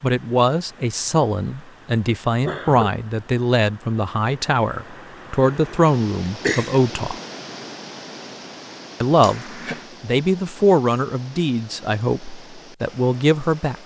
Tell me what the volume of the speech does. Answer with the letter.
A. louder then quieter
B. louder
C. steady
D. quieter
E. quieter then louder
C.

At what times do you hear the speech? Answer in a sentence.
You can hear the speech from 0.0 to 7.2 s and from 9.0 to 13.8 s.